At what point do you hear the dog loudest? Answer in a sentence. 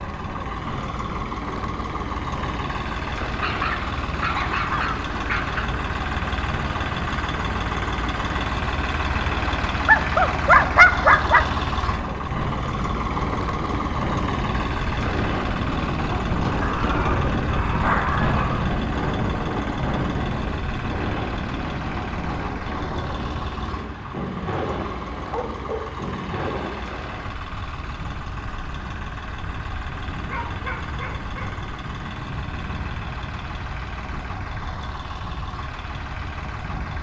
The loudest moment of the dog is at 11 seconds.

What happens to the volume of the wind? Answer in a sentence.
The loudness of the wind goes up, then down.